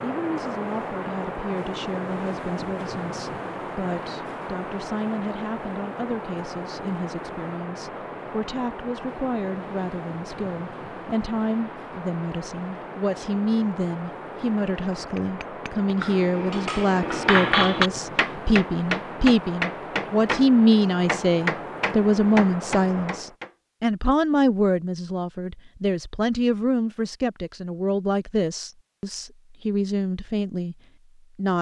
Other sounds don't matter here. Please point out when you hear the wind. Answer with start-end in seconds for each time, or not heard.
0.0-23.4.